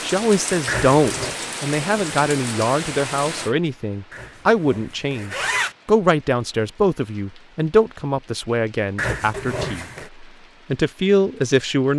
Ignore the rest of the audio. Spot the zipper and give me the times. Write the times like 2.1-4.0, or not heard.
0.7-1.4, 4.1-5.8, 8.9-10.1.